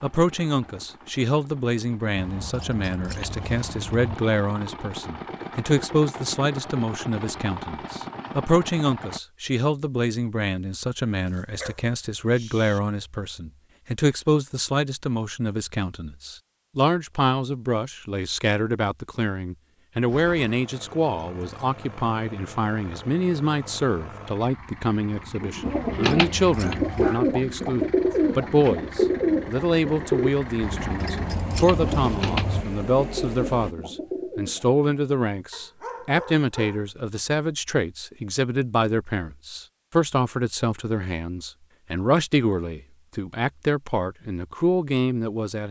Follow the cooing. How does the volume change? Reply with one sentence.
The volume of the cooing goes down.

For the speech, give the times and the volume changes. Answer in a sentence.
The speech can be heard from 0.0 to 45.6 s, at a steady volume.